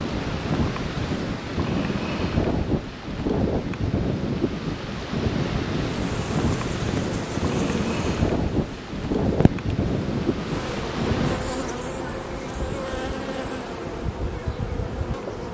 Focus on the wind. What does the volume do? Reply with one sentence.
The volume of the wind goes down.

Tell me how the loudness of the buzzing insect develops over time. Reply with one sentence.
The loudness of the buzzing insect goes down, then up.